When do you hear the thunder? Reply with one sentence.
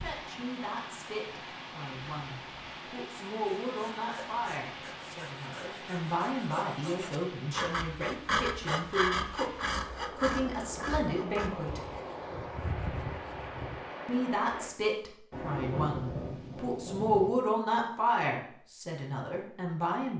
The thunder can be heard from 15.3 to 17.3 s.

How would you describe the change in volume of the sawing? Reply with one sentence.
The loudness of the sawing goes up, then down.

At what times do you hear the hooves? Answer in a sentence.
You can't hear the hooves here.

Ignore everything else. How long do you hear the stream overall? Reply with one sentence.
The stream can be heard for 15 seconds in total.